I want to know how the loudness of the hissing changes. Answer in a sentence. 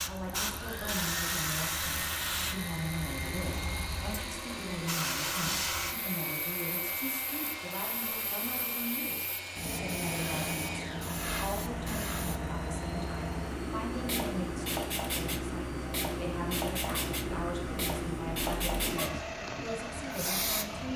The volume of the hissing stays about the same.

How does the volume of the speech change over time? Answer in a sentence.
The volume of the speech stays about the same.